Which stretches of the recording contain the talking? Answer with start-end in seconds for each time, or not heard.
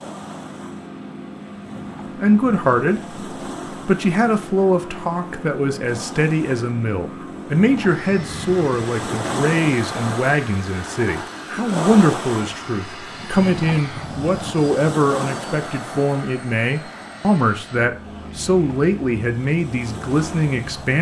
2.1-3.0, 3.9-20.9.